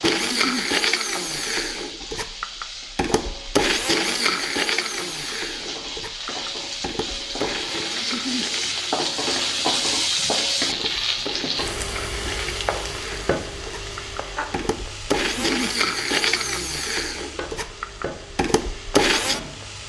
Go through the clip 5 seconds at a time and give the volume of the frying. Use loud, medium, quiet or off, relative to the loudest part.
medium, loud, loud, medium.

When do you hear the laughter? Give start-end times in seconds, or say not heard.
0.1-0.7, 8.0-8.4, 15.2-15.7.